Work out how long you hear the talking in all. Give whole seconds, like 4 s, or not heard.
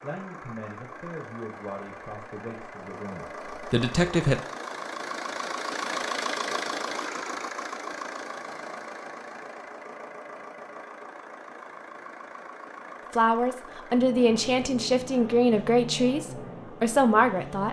9 s.